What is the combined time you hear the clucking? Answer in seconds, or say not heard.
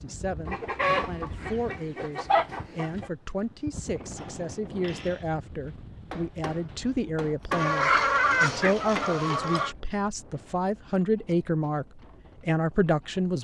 5 s.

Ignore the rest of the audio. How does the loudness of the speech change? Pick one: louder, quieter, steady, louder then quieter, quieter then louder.
louder.